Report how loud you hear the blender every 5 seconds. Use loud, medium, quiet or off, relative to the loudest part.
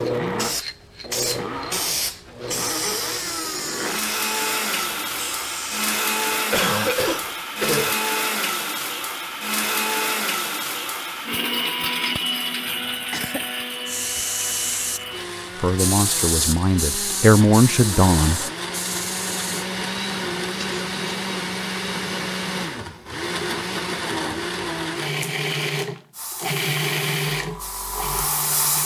loud, loud, loud, medium, loud, loud.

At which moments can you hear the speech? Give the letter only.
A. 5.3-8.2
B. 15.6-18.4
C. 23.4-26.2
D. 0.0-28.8
B.